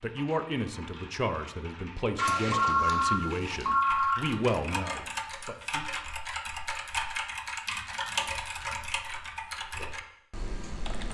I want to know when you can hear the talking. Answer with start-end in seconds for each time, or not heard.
0.0-5.8.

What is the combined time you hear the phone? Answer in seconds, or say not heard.
2 s.